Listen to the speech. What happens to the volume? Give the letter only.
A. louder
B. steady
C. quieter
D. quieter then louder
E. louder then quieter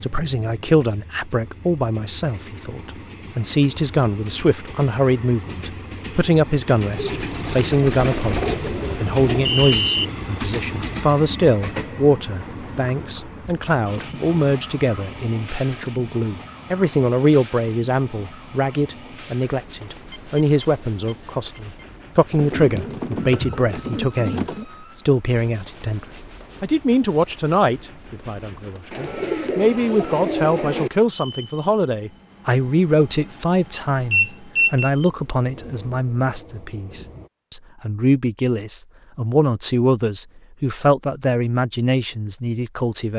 B.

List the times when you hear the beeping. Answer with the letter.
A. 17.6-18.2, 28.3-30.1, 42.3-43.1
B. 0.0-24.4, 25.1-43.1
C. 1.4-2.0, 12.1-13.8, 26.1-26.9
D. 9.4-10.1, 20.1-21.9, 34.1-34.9
D.